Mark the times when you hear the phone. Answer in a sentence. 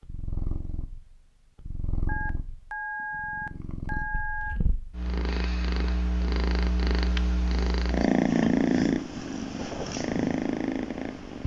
The phone can be heard from 2.0 to 4.6 s.